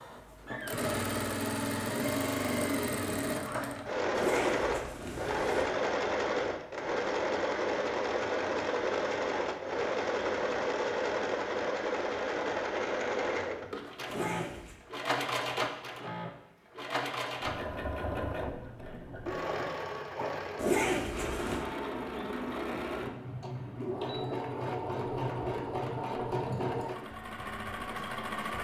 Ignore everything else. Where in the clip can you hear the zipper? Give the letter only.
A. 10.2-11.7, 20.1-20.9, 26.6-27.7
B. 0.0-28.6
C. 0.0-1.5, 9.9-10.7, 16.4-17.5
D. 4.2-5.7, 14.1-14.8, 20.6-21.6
D.